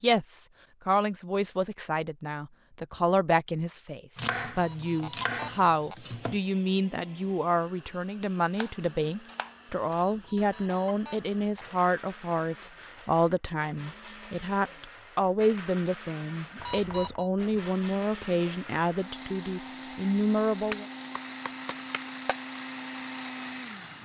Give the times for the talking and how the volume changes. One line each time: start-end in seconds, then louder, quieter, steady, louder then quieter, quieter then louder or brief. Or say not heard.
0.0-20.9 steady.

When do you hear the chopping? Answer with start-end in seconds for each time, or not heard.
4.2-6.4, 8.6-10.1, 20.7-22.4.